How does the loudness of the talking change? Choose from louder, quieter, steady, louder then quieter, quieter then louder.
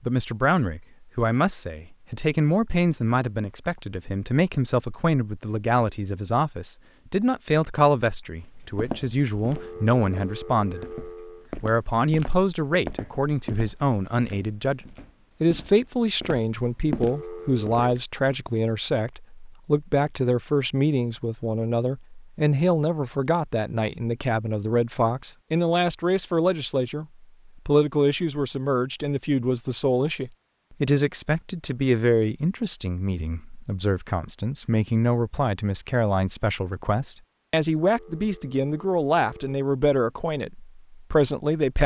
steady.